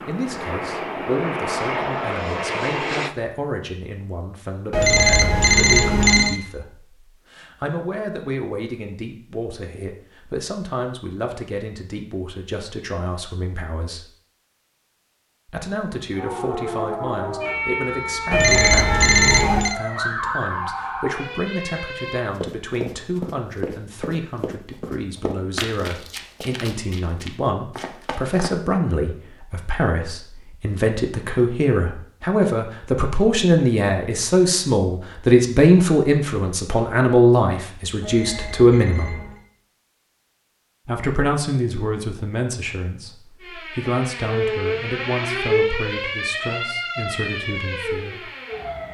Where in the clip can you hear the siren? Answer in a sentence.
You can hear the siren from 16.1 to 22.2 s and from 43.4 to 48.9 s.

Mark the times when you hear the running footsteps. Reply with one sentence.
You can hear the running footsteps from 22.1 to 28.8 s.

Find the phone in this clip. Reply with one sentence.
You can hear the phone from 4.7 to 6.4 s, from 18.3 to 19.8 s and from 38.0 to 39.4 s.